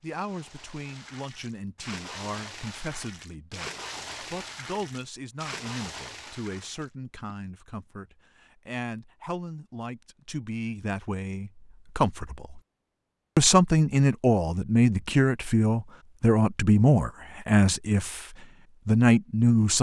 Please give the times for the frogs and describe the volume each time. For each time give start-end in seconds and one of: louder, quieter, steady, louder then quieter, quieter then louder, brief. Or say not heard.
not heard.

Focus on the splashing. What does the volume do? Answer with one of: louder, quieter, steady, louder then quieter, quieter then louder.
louder.